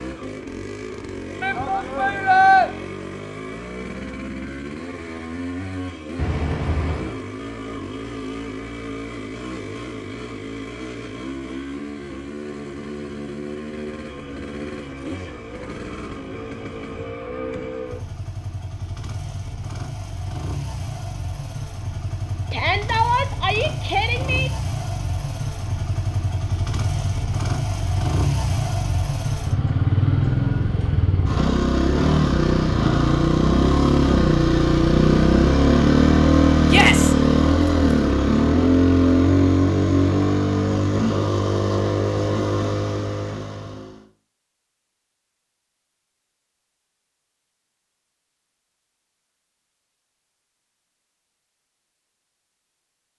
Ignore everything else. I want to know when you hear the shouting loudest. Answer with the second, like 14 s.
2 s.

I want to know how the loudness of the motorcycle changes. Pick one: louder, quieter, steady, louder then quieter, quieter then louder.
louder.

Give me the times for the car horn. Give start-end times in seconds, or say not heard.
6.2-7.2.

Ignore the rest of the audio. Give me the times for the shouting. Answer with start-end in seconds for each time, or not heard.
1.4-2.7, 22.5-24.5, 36.6-37.1.